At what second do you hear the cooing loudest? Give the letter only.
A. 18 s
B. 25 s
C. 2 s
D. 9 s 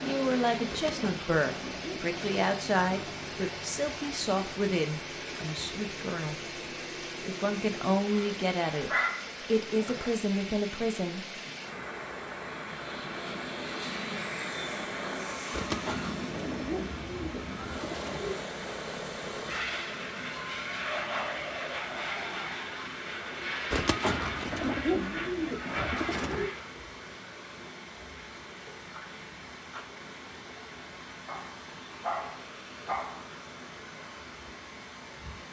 B.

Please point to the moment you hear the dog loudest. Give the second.
9 s.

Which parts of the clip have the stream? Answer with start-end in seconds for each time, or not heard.
0.0-35.4.